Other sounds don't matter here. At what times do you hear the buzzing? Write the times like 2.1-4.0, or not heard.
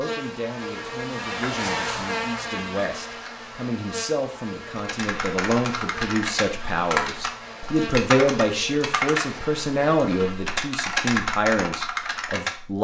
0.0-10.6.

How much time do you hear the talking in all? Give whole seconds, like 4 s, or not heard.
13 s.